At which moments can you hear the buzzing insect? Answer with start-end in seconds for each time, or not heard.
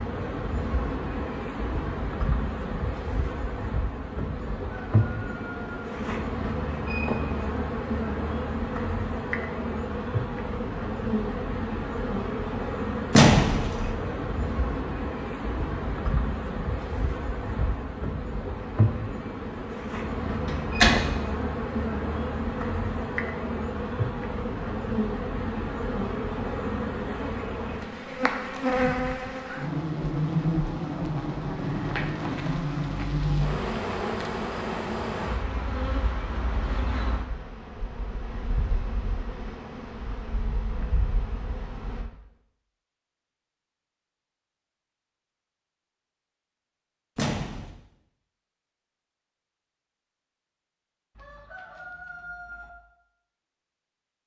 0.0-42.1.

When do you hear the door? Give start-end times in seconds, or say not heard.
13.1-13.9, 20.4-21.1, 47.1-47.7.